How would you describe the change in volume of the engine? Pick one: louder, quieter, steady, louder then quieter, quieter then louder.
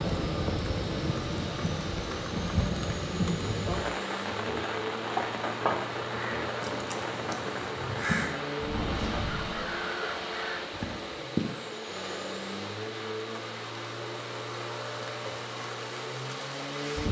steady.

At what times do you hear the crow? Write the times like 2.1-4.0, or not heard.
5.1-11.1.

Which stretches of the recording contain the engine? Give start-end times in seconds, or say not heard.
0.0-17.0.